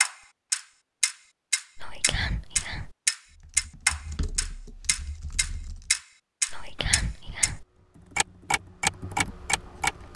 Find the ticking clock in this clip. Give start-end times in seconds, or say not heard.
0.0-7.5, 8.2-10.1.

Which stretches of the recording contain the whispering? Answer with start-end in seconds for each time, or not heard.
1.8-3.0, 6.5-7.7.